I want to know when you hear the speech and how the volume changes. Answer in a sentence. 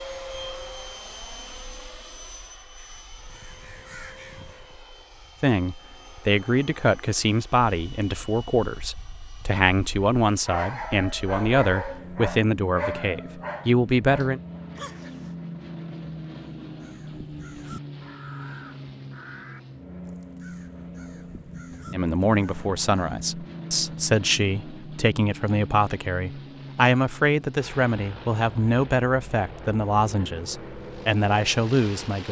You can hear the speech from 5.4 to 14.4 s, at a steady volume; and from 21.9 to 32.2 s, at a steady volume.